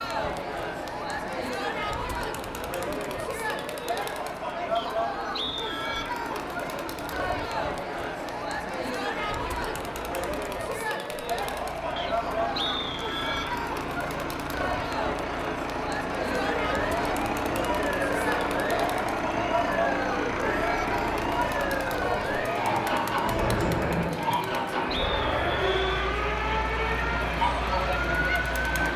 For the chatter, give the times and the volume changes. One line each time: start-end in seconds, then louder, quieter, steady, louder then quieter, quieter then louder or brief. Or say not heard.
0.0-28.9 steady.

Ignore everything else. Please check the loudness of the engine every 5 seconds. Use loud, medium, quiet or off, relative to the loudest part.
quiet, medium, medium, loud, loud, loud.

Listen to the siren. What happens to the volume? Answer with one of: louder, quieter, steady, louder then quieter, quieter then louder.
steady.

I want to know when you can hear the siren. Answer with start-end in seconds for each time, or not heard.
16.2-28.6.